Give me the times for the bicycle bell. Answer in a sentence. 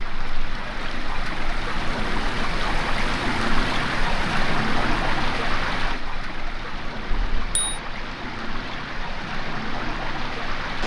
The bicycle bell can be heard from 7.1 to 7.8 s.